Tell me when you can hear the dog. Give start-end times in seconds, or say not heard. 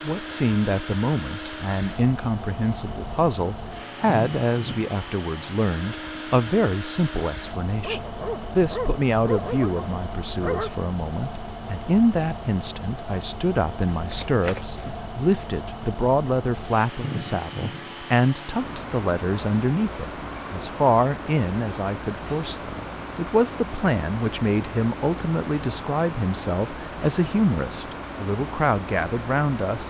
7.8-10.7.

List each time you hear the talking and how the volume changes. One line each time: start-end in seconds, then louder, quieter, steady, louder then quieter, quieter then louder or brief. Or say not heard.
0.0-29.8 steady.